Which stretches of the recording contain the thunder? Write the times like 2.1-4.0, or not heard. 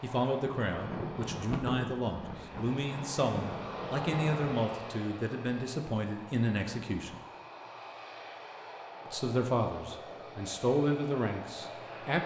0.7-4.4.